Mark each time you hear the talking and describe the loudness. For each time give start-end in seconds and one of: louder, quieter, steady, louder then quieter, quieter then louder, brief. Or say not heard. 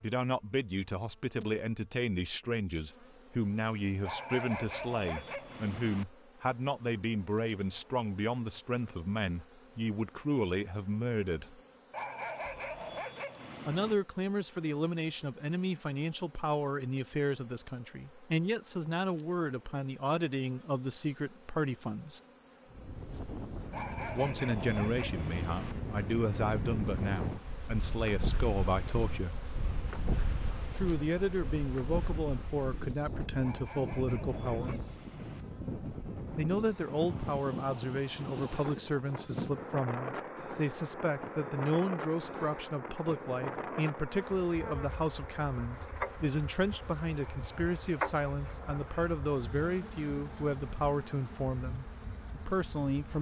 0.0-11.6 steady
13.7-22.2 steady
24.1-29.4 steady
30.8-34.8 steady
36.4-53.1 steady.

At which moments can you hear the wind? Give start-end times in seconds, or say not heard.
22.6-53.1.